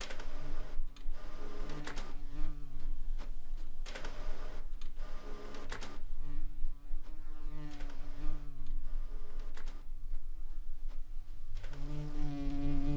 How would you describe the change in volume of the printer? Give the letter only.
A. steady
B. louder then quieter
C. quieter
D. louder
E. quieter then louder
C.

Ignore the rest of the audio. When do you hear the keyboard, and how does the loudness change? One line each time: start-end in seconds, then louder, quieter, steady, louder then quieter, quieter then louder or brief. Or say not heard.
not heard.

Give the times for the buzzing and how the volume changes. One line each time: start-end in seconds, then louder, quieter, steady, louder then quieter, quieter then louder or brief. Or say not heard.
0.2-12.9 quieter then louder.